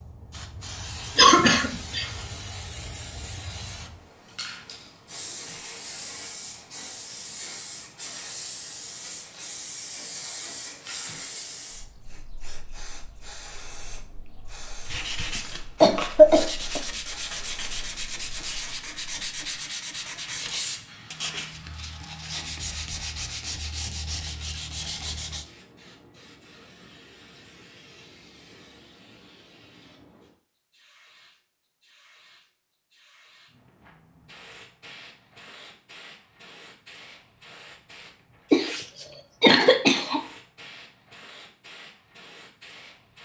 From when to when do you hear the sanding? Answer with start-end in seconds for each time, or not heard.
14.8-25.4.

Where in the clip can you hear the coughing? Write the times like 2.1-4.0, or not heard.
1.1-2.0, 15.8-16.8, 38.5-40.2.